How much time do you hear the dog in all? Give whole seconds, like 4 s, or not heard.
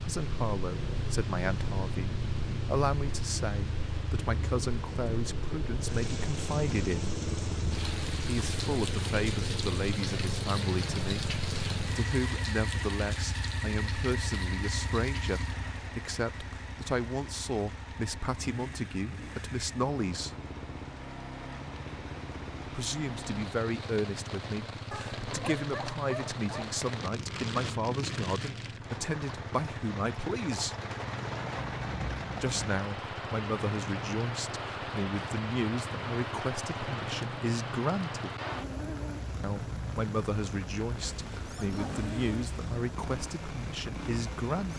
2 s.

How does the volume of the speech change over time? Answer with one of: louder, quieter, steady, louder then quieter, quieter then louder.
steady.